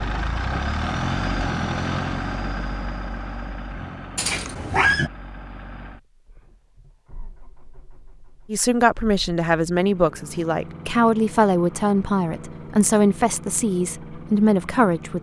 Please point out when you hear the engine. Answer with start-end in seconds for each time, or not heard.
0.0-15.1.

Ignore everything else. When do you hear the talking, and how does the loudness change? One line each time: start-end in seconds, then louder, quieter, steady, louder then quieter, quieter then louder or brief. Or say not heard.
8.5-15.1 steady.